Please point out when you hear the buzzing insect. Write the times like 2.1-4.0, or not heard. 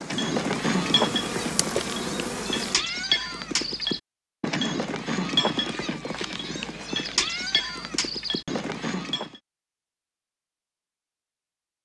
0.0-2.8.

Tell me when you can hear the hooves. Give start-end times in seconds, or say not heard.
0.1-9.4.